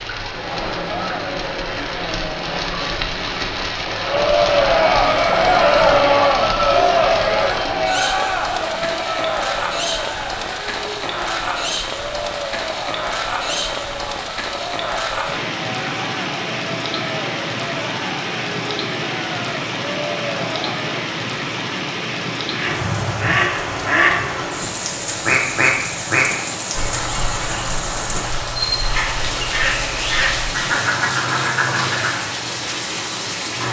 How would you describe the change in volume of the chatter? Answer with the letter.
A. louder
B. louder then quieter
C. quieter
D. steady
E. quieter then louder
B.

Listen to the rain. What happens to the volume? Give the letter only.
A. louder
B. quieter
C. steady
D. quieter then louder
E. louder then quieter
C.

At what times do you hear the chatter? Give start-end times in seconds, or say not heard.
0.2-21.1.